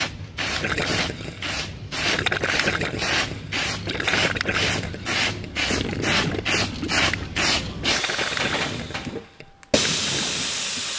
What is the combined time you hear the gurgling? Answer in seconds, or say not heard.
10 s.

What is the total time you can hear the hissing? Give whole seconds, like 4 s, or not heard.
11 s.